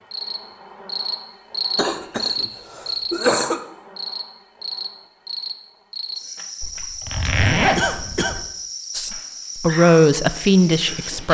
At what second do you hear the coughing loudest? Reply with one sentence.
The volume of the coughing peaks at 3 seconds.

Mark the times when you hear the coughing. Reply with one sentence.
The coughing can be heard from 1.8 to 3.6 s and from 7.8 to 8.3 s.